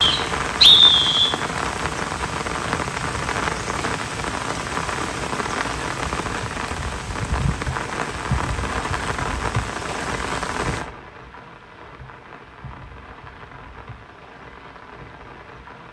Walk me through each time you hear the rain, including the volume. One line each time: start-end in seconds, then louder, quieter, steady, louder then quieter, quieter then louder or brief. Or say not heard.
0.0-15.8 quieter.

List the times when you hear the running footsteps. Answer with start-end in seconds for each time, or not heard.
not heard.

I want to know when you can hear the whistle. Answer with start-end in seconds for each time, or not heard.
0.0-1.4.